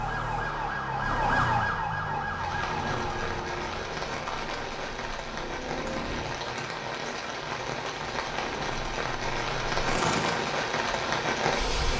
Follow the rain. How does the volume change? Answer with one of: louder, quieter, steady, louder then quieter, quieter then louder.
louder.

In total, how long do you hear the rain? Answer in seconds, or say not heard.
10 s.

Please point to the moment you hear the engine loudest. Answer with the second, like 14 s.
10 s.